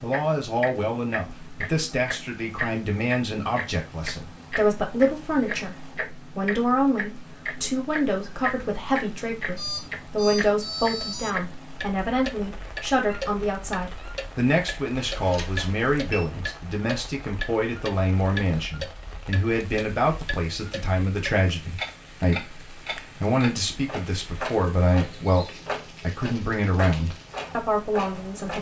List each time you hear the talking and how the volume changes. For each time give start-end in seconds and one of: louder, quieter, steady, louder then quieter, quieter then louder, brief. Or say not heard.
0.0-28.5 steady.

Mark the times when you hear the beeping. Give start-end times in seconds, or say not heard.
9.6-11.3, 15.1-16.2.